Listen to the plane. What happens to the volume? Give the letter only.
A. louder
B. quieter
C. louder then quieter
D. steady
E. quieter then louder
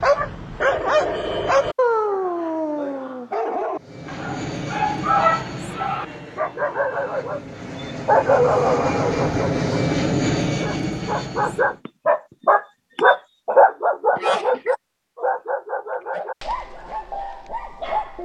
E.